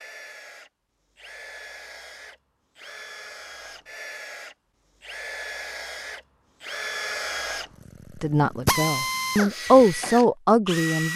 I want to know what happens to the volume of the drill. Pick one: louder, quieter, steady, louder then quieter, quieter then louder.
louder.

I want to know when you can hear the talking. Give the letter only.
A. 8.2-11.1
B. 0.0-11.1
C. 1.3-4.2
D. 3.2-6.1
A.